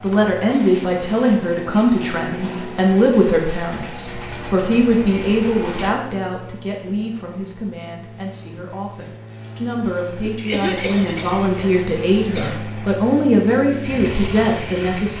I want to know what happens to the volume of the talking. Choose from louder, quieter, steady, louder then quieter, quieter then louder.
quieter then louder.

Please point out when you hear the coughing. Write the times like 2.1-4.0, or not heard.
10.2-12.6.